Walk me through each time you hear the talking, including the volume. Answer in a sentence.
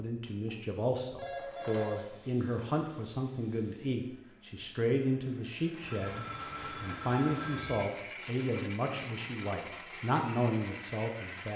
You can hear the talking from 0.0 to 11.5 s, at a steady volume.